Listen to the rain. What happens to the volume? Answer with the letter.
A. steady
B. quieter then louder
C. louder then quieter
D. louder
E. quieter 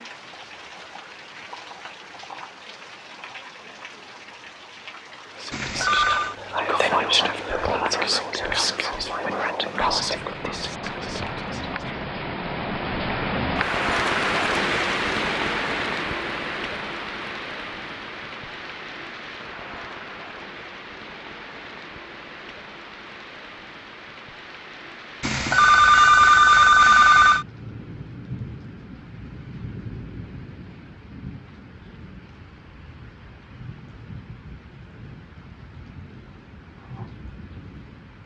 C.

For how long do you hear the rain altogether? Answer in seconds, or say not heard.
38 s.